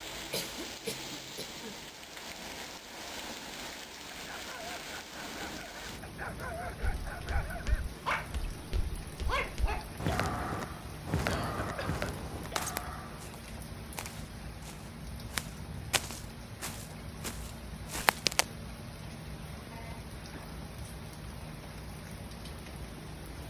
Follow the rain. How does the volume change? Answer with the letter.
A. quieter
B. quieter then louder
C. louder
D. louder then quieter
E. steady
E.